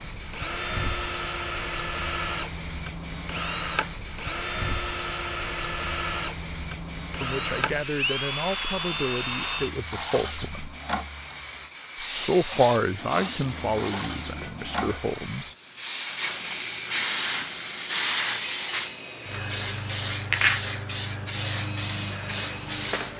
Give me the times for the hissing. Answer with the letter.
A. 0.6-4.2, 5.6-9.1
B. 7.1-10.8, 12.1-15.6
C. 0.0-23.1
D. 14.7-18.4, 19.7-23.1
C.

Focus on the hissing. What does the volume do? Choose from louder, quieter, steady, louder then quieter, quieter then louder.
louder.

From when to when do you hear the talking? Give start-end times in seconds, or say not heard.
7.1-10.8, 12.1-15.6.